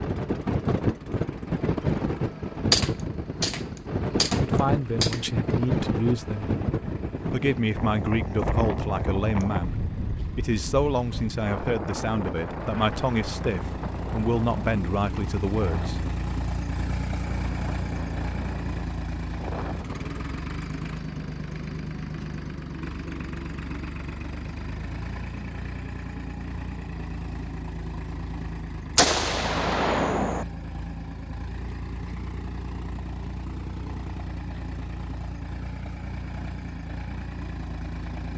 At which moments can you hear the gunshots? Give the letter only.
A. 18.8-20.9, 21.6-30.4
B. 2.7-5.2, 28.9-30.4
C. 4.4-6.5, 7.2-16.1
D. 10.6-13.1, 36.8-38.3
B.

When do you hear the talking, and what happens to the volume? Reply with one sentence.
You can hear the talking briefly from 4.4 to 6.5 s; and from 7.2 to 16.1 s, at a steady volume.